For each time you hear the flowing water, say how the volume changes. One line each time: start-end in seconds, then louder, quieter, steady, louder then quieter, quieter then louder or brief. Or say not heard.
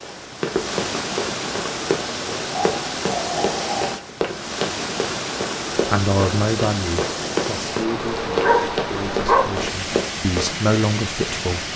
0.0-11.7 steady.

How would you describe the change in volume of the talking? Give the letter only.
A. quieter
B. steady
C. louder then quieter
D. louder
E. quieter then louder
E.